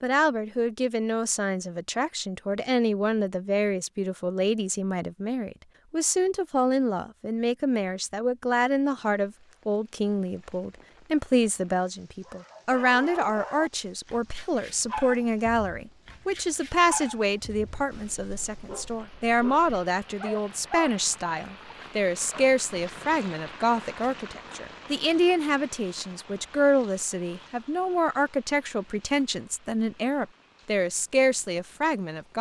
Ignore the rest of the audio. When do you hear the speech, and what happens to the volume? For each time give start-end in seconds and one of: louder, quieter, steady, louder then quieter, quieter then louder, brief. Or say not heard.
0.0-32.3 steady.